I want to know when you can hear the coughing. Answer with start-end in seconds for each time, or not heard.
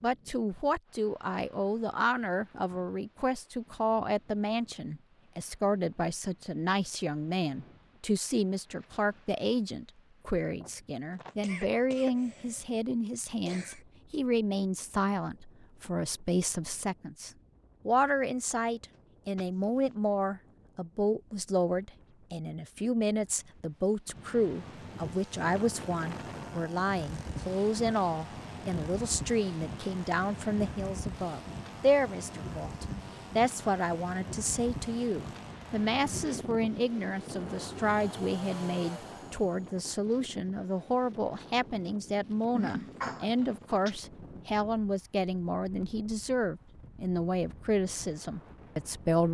11.1-13.8, 18.9-19.9, 42.5-44.0.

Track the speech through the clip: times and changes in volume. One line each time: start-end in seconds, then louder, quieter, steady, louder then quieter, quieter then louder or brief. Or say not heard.
0.0-49.2 steady.